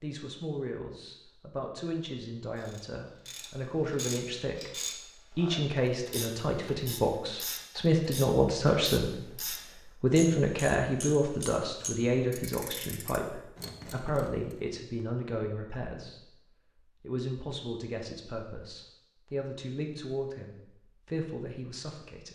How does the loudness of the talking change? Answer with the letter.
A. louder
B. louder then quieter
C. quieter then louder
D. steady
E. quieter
B.